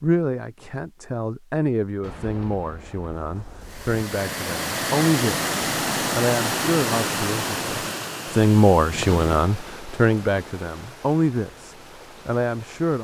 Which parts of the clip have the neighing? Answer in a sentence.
The neighing can't be heard in this clip.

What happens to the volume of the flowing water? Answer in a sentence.
The loudness of the flowing water goes down.